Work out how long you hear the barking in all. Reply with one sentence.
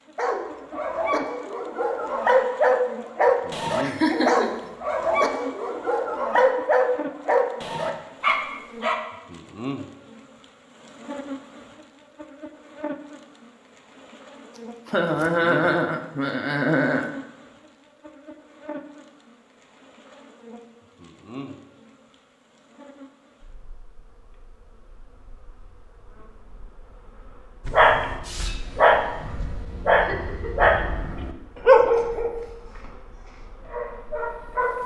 The barking can be heard for 16 seconds in total.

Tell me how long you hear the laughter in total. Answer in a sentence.
The laughter can be heard for 4 seconds in total.